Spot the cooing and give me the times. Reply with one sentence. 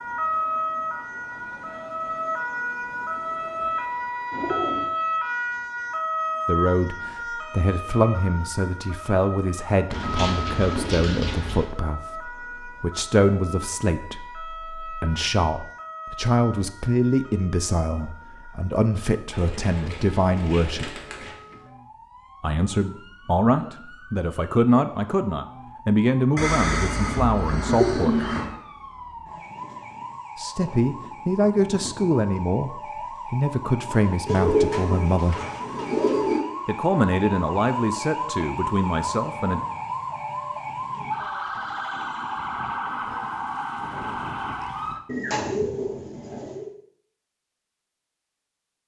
The cooing can be heard from 4.3 to 4.9 s, from 9.9 to 11.7 s, from 19.3 to 21.4 s, from 26.4 to 28.6 s, from 34.2 to 36.4 s and from 45.0 to 46.7 s.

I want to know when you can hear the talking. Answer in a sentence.
The talking can be heard from 6.5 to 21.0 s, from 22.4 to 28.3 s, from 30.4 to 35.4 s and from 36.6 to 39.6 s.